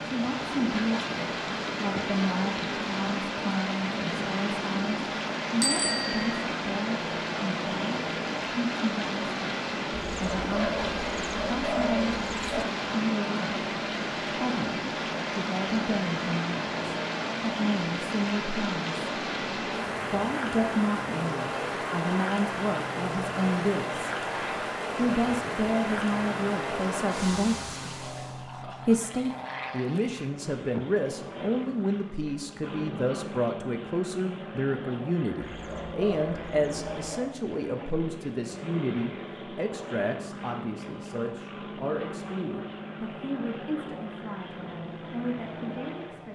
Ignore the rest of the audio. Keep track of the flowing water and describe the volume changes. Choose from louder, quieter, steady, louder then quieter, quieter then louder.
steady.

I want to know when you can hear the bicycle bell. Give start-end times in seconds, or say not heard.
5.6-6.5.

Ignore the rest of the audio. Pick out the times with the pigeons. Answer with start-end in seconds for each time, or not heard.
10.1-12.7, 35.4-37.4.